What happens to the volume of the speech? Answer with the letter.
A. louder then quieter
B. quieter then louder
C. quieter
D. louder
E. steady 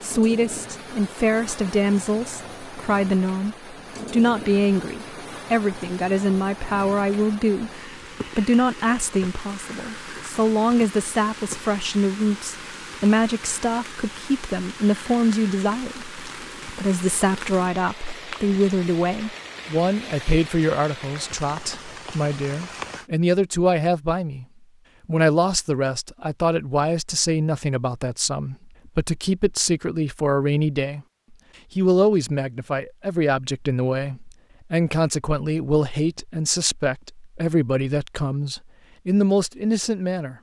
E.